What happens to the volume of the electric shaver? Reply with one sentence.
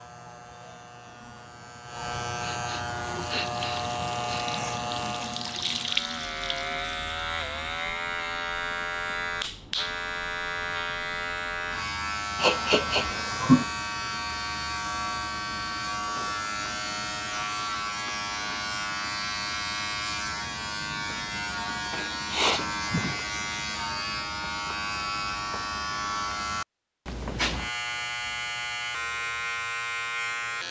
The loudness of the electric shaver stays about the same.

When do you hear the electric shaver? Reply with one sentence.
The electric shaver can be heard from 0.0 to 30.6 s.